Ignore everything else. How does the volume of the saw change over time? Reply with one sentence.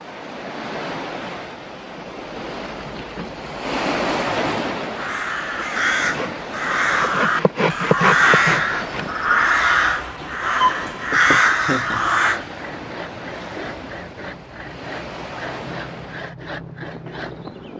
The volume of the saw goes down.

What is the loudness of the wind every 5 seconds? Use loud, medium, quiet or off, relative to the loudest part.
loud, medium, medium, medium.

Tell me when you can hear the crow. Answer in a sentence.
You can hear the crow from 4.9 to 12.4 s.